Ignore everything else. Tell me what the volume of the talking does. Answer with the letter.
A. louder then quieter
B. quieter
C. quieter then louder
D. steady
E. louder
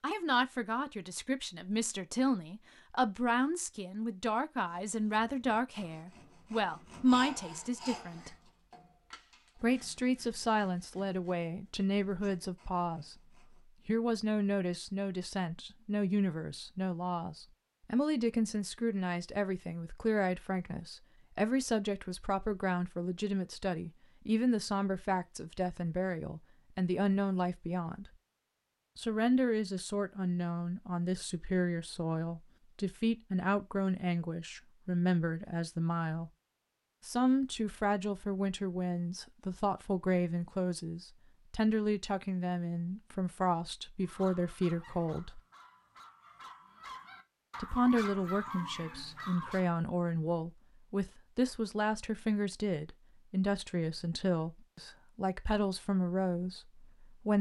D.